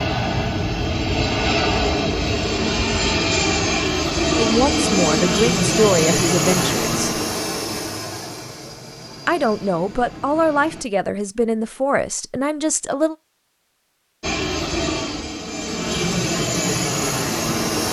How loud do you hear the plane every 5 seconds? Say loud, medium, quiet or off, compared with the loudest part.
loud, loud, medium, loud.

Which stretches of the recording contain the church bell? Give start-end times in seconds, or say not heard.
not heard.